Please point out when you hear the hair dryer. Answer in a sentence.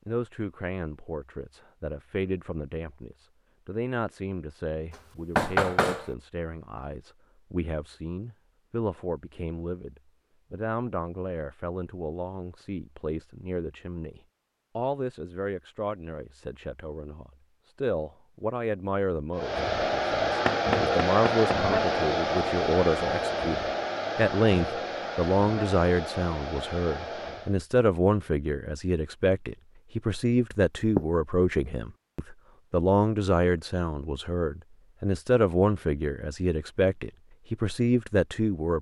The hair dryer can be heard from 19.3 to 27.6 s.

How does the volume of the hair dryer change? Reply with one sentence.
The loudness of the hair dryer goes down.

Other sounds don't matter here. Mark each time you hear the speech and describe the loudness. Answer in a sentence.
You can hear the speech from 0.1 to 38.7 s, getting louder.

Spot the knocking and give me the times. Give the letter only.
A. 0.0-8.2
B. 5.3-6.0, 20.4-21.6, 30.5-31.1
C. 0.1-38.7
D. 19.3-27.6
B.